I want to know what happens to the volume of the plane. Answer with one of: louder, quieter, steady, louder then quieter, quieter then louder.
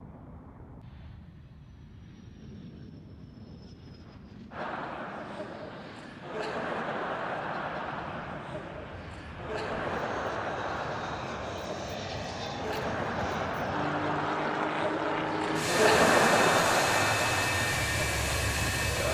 louder.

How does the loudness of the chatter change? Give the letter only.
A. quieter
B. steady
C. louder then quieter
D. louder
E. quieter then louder
D.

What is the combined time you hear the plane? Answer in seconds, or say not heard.
19 s.